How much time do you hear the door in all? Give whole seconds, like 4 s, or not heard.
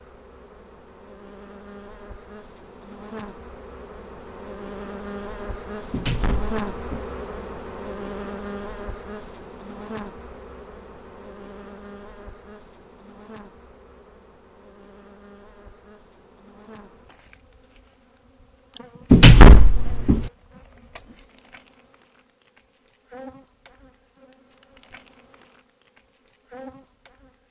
2 s.